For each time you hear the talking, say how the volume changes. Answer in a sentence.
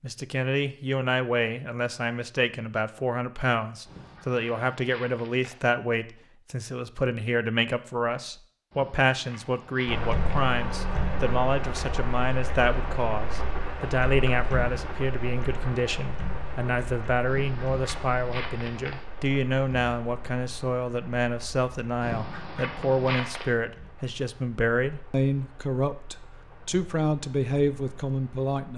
You can hear the talking from 0.0 to 28.7 s, at a steady volume.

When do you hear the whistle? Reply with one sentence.
The whistle can't be heard in this clip.